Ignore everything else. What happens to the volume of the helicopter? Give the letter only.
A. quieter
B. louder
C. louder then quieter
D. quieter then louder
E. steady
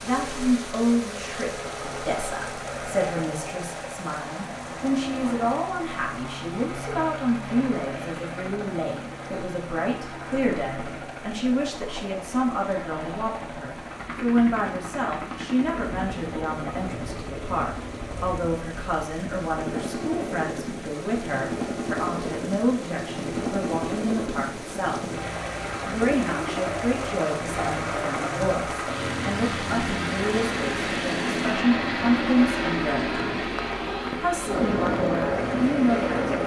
B.